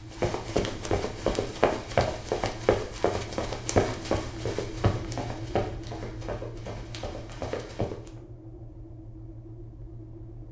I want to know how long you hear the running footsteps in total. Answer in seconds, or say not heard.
8 s.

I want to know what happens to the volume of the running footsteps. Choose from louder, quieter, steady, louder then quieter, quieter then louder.
quieter.